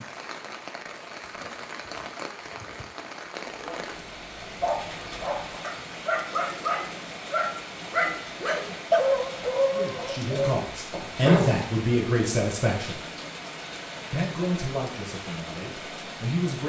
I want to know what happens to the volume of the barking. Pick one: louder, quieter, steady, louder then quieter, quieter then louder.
louder then quieter.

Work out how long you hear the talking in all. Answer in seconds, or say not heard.
6 s.